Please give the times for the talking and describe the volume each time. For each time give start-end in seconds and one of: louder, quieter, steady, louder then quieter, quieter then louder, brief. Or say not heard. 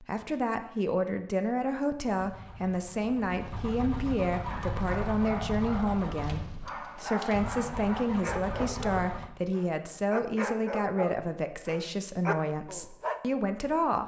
0.0-14.0 steady.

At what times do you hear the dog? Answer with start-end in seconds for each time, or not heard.
4.4-13.2.